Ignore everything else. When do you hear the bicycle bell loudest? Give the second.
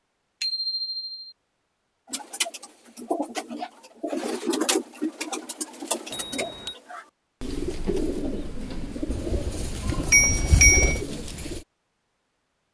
11 s.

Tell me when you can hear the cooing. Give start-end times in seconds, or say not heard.
2.1-11.7.